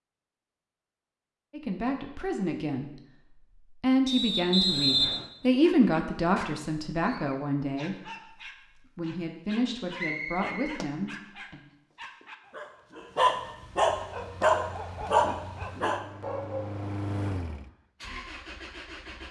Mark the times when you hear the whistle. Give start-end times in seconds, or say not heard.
4.0-5.2, 9.9-10.8.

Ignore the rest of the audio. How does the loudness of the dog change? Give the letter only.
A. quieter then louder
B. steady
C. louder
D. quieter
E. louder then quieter
C.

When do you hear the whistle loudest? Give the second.
5 s.